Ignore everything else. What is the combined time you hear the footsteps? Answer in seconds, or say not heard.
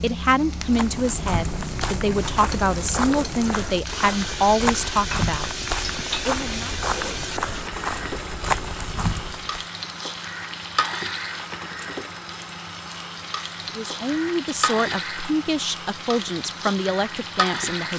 9 s.